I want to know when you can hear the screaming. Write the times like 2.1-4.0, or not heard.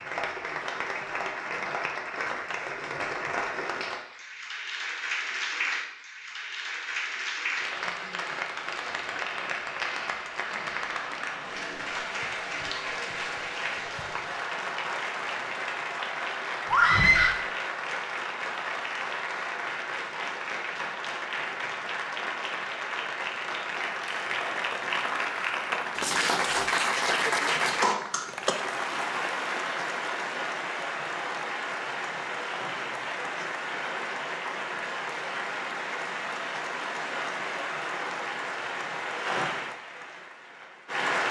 16.6-17.4.